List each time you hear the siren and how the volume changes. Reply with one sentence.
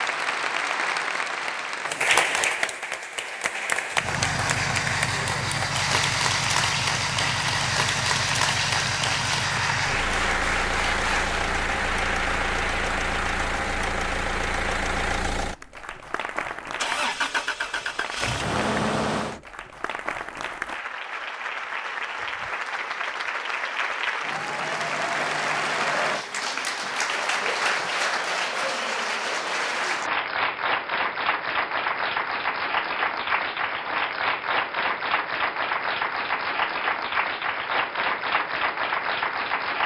You can't hear the siren here.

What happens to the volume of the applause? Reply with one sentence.
The loudness of the applause goes down, then up.